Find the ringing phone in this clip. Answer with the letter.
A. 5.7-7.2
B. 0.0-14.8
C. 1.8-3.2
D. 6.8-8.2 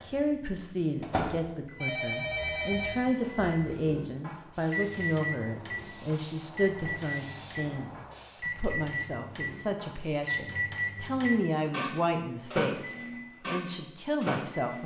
C.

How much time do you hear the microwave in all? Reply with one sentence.
You can hear the microwave for 15 seconds altogether.